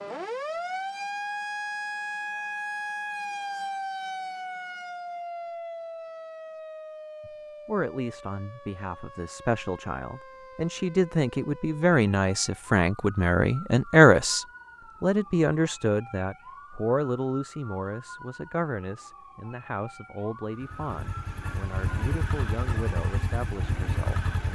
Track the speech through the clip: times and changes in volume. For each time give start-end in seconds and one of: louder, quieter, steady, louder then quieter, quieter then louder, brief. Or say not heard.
7.2-24.3 louder then quieter.